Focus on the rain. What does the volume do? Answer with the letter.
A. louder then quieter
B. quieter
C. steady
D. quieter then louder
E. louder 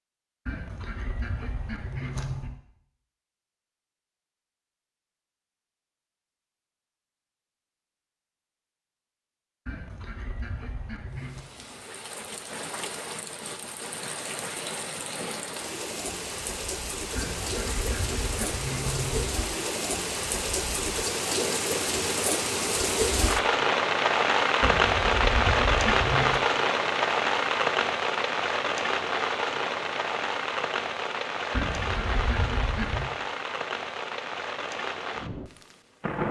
A.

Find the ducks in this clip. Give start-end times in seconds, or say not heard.
0.5-2.6, 9.7-11.5, 17.1-19.3, 24.6-26.4, 31.5-33.1.